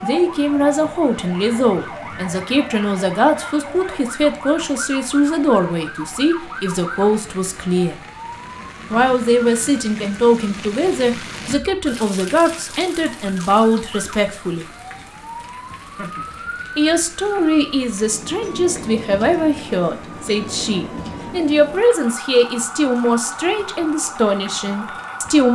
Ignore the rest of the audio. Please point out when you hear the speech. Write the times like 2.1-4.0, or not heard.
0.0-8.0, 8.9-14.7, 16.8-25.5.